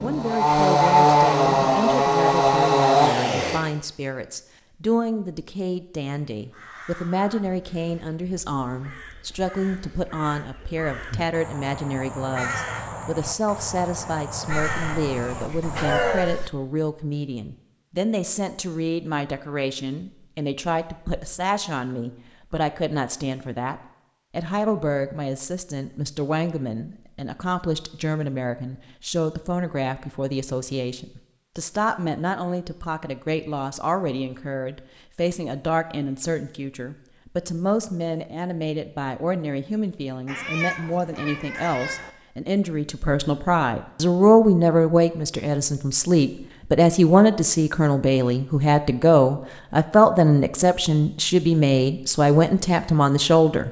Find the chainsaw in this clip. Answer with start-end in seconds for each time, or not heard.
0.0-3.6.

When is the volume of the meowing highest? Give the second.
16 s.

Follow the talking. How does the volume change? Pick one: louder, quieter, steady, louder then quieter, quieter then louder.
louder.